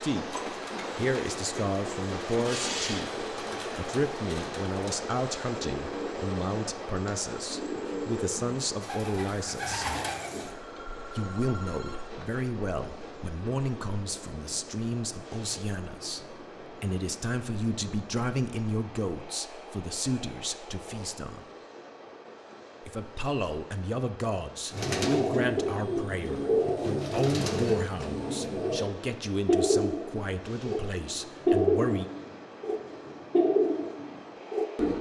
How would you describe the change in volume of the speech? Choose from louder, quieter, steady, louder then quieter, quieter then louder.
steady.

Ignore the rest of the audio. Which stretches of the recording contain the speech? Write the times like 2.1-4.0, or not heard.
0.0-9.9, 11.1-21.4, 22.8-32.0.